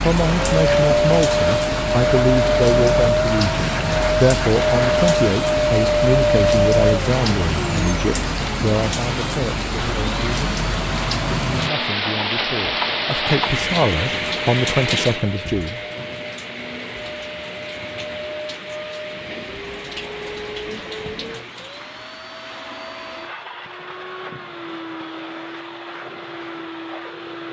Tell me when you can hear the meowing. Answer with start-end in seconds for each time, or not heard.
not heard.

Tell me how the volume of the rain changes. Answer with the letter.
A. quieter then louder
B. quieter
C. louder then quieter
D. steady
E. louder
B.